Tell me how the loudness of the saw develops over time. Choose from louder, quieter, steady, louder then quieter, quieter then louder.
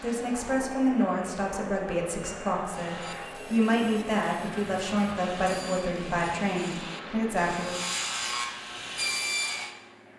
louder.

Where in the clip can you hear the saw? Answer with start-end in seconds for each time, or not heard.
2.7-9.8.